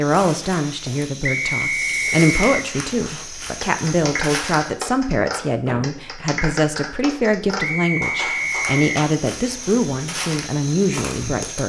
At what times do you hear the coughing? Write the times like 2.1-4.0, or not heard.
5.7-6.4.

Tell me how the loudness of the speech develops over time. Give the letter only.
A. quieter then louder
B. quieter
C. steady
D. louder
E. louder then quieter
C.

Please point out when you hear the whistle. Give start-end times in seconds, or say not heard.
1.2-2.5, 7.5-9.1.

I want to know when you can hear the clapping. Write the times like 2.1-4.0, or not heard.
2.7-9.1.